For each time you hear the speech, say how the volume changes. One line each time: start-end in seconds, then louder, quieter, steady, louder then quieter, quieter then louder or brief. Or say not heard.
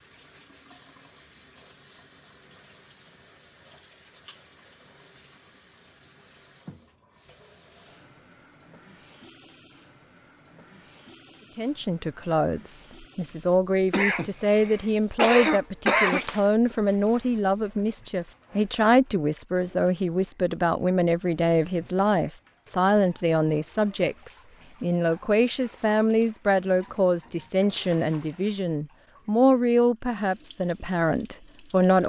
11.6-32.0 steady.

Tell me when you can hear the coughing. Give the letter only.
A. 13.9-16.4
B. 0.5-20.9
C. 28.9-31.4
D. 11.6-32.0
A.